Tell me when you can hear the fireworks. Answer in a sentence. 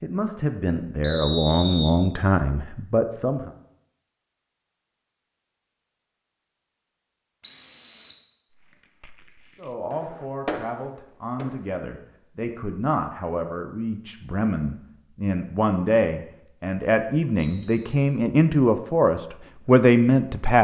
The fireworks can be heard from 8.5 to 11.8 s.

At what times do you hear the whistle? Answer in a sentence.
You can hear the whistle from 1.0 to 1.9 s, from 7.4 to 8.2 s and from 17.4 to 17.9 s.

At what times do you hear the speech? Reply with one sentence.
You can hear the speech from 0.0 to 3.5 s and from 9.6 to 20.5 s.